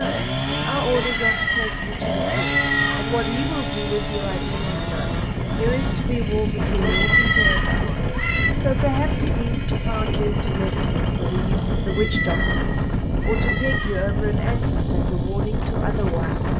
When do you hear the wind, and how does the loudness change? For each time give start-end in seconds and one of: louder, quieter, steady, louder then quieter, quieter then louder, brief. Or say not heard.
0.0-16.5 louder.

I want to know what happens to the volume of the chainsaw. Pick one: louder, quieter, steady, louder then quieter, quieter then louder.
quieter.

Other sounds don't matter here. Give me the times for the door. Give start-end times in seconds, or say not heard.
not heard.